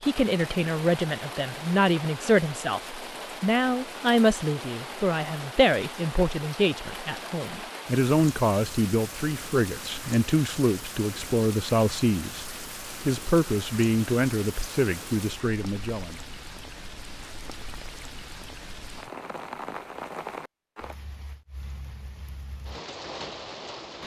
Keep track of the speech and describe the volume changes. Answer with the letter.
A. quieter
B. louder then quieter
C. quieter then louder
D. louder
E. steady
E.